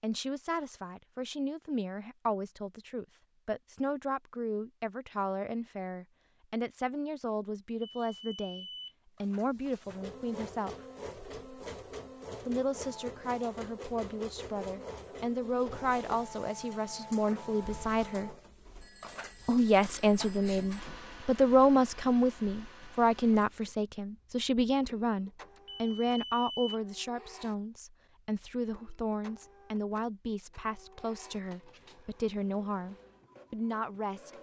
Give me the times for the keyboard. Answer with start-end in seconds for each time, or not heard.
not heard.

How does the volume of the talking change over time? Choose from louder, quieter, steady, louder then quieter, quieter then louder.
louder then quieter.